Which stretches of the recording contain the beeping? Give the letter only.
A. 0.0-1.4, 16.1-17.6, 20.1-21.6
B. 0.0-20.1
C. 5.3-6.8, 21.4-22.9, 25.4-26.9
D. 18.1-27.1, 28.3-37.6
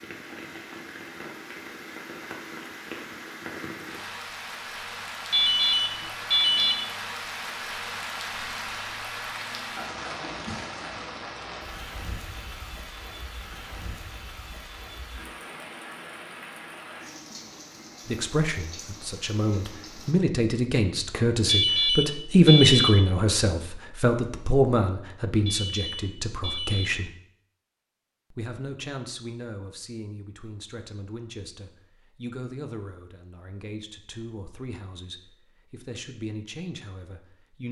C.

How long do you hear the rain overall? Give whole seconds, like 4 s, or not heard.
20 s.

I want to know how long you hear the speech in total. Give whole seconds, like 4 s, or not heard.
18 s.